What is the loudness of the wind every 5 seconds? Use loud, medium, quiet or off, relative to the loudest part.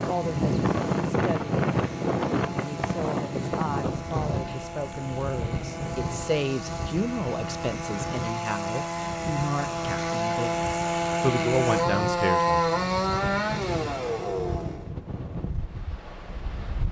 loud, medium, medium, medium.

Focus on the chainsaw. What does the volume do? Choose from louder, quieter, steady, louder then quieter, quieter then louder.
louder.